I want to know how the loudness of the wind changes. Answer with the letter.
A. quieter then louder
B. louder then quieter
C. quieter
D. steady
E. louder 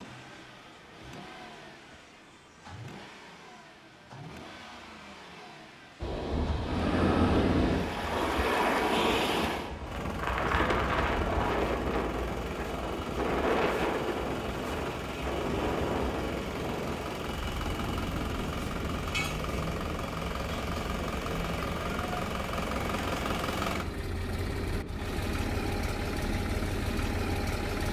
C.